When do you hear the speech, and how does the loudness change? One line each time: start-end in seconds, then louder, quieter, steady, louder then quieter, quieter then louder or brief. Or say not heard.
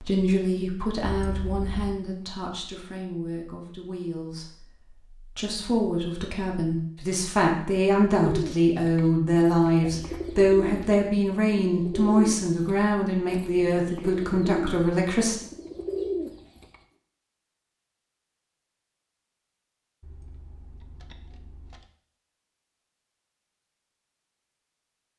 0.0-15.3 louder.